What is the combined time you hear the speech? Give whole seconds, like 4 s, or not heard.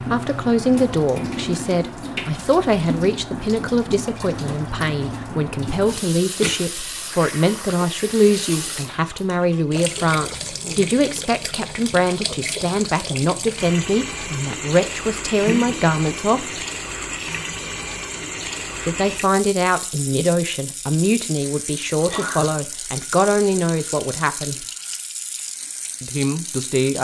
23 s.